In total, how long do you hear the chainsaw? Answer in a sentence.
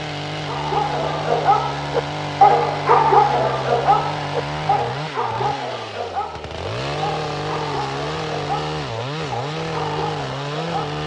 You can hear the chainsaw for 11 seconds altogether.